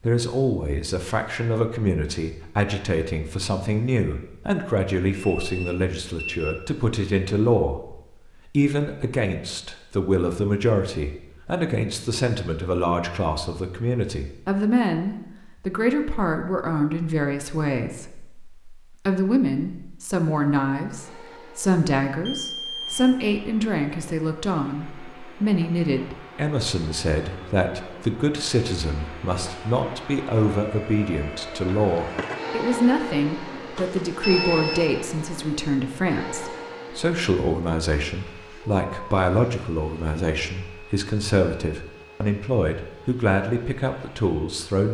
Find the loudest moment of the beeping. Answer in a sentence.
The loudest moment of the beeping is at 34 seconds.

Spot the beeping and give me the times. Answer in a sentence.
The beeping can be heard from 5.2 to 6.6 s, from 22.2 to 23.0 s and from 33.8 to 34.9 s.